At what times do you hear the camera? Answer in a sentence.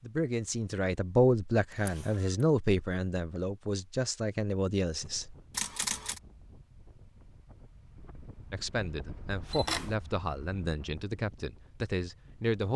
The camera can be heard from 1.7 to 2.5 s, from 5.5 to 6.2 s and from 9.5 to 9.9 s.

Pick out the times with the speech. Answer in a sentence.
You can hear the speech from 0.0 to 5.3 s and from 8.5 to 12.7 s.